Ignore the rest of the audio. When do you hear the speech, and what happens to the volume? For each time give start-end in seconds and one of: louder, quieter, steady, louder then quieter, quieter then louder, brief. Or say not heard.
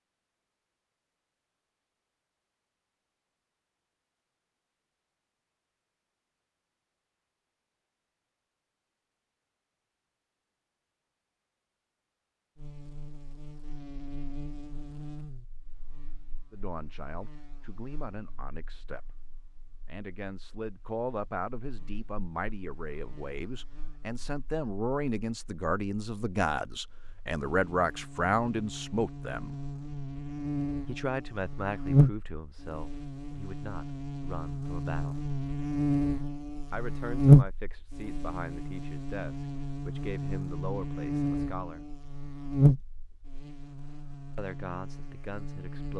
16.5-19.1 brief
19.9-29.6 louder
30.9-35.2 quieter
36.7-41.9 steady
44.4-45.9 brief.